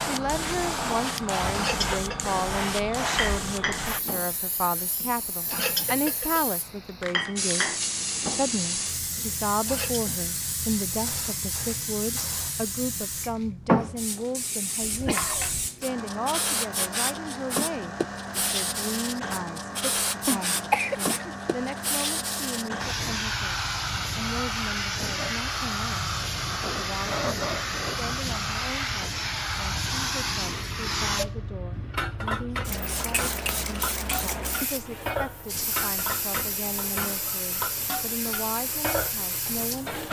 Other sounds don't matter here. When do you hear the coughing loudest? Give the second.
21 s.